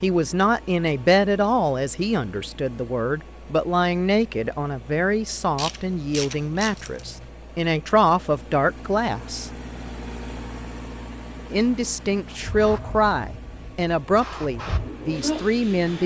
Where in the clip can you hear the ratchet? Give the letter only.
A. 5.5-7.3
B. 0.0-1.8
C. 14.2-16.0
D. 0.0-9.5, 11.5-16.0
A.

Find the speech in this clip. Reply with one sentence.
You can hear the speech from 0.0 to 9.5 s and from 11.5 to 16.0 s.